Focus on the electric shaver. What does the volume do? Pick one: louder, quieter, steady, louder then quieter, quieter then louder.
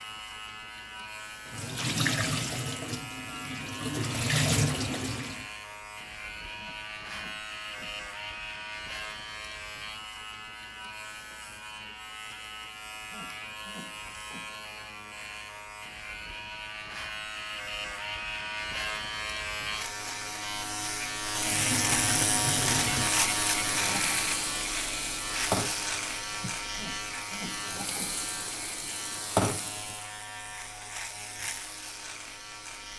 louder then quieter.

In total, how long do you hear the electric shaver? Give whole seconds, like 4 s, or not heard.
33 s.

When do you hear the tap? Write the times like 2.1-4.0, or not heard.
1.4-5.5, 21.4-30.1.